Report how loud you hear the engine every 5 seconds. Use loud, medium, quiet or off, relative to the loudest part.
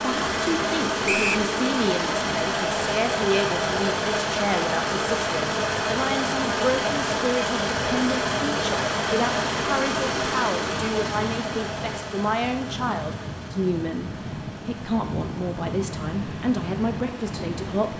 loud, loud, medium, quiet.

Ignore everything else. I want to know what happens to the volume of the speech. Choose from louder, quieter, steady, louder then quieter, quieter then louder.
steady.